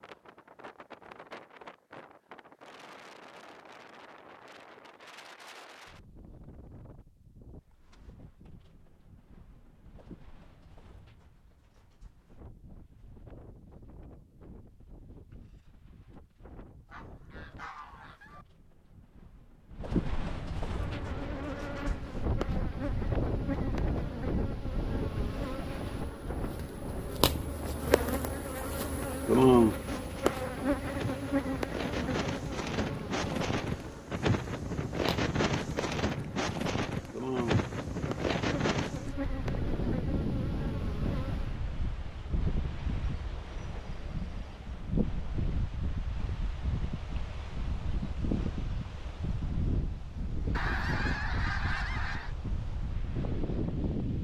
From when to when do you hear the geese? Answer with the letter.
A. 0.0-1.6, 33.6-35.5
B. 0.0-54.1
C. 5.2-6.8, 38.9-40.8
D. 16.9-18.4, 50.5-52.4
D.